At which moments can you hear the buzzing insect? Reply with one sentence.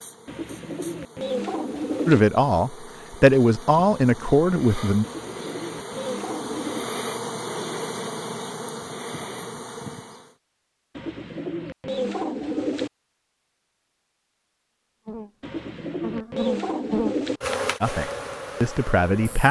The buzzing insect can be heard from 0.0 to 10.3 s and from 15.1 to 19.4 s.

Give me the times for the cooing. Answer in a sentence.
You can hear the cooing from 0.2 to 2.2 s, from 5.0 to 6.9 s, from 10.9 to 12.9 s and from 15.4 to 17.4 s.